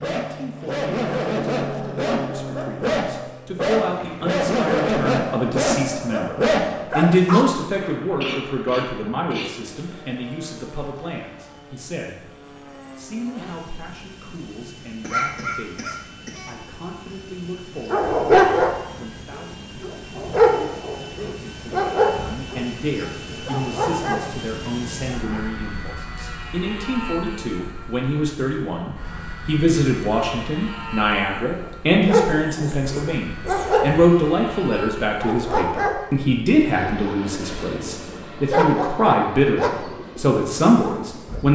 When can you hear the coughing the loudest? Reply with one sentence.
The loudest moment of the coughing is at 15 seconds.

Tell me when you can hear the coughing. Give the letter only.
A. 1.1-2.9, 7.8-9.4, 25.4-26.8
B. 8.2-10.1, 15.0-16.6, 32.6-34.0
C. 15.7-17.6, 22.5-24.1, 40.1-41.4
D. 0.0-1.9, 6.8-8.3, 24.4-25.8
B.